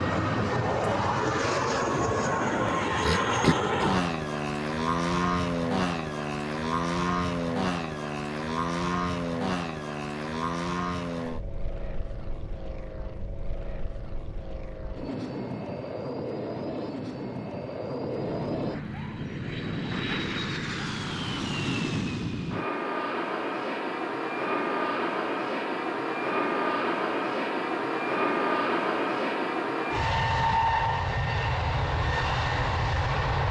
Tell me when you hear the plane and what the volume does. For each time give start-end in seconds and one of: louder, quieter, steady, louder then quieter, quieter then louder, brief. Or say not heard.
0.0-33.4 quieter then louder.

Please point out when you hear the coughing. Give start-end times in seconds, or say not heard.
3.0-4.0.